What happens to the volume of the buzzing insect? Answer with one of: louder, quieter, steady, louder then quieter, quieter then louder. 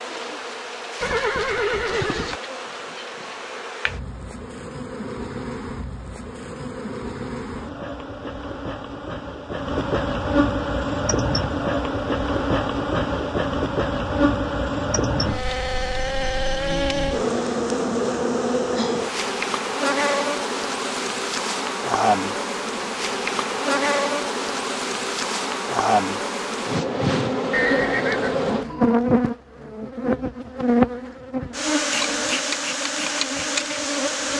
louder.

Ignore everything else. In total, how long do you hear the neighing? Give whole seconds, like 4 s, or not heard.
3 s.